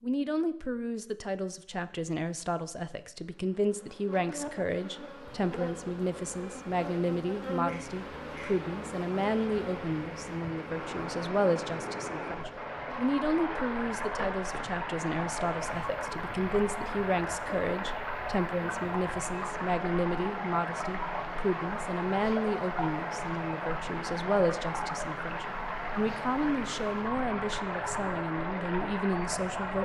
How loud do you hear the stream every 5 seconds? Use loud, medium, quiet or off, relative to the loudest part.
off, medium, loud, loud, loud, loud.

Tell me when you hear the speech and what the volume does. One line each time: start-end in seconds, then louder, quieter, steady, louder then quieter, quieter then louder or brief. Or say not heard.
0.0-29.8 steady.